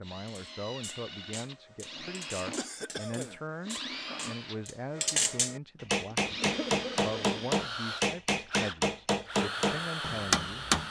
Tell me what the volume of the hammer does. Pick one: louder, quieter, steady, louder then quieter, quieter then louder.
louder.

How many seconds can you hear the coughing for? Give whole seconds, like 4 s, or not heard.
2 s.